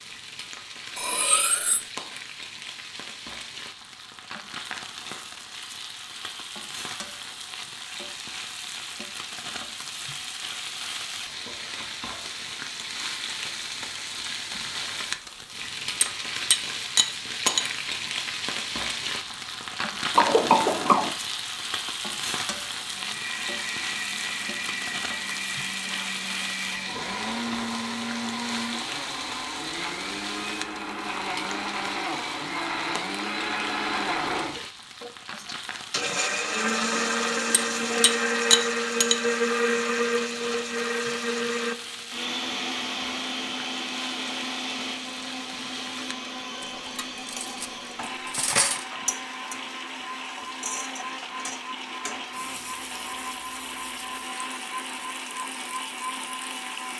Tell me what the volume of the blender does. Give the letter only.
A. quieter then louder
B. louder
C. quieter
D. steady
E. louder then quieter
E.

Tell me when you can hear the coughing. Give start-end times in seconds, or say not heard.
20.1-21.1.